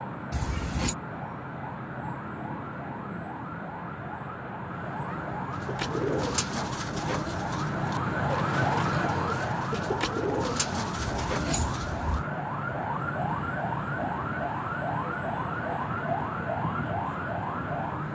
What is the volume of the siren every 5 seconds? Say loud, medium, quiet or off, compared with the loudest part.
medium, loud, loud, loud.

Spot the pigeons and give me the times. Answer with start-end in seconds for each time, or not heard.
5.5-12.1.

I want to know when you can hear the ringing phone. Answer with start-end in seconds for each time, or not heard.
0.3-0.9, 10.9-12.2.